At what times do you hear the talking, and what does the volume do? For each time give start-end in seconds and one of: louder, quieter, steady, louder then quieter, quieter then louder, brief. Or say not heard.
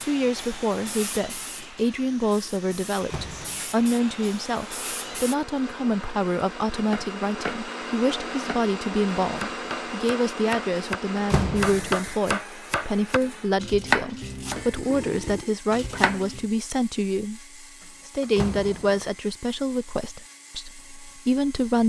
0.0-21.8 steady.